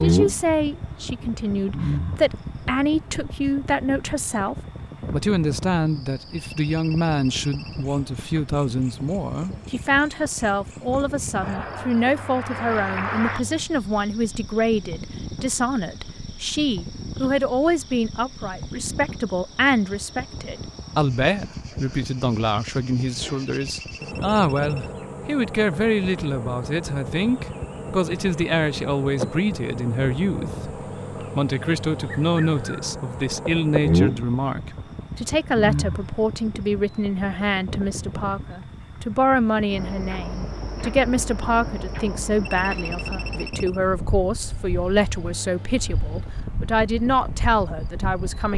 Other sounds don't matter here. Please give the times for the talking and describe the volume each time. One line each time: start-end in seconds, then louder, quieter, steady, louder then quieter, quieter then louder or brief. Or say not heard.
0.0-48.5 steady.